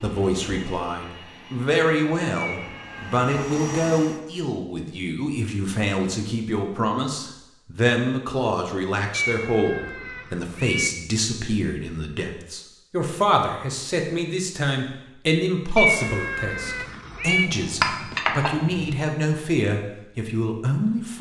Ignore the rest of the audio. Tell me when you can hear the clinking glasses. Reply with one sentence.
You can hear the clinking glasses from 17.4 to 18.9 s.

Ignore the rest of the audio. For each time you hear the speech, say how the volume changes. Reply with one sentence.
The speech can be heard from 0.0 to 21.1 s, at a steady volume.